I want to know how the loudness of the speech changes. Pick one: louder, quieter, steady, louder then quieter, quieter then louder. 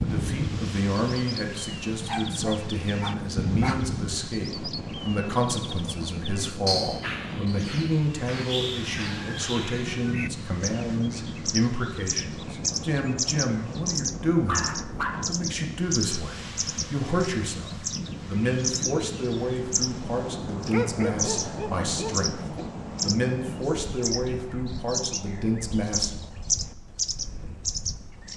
steady.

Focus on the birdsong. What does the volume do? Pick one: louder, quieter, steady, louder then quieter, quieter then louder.
steady.